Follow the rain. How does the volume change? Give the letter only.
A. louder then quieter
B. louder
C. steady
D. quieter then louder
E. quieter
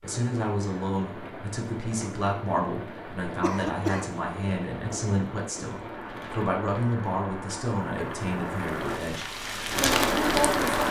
B.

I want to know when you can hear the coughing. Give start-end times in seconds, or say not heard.
3.4-4.2.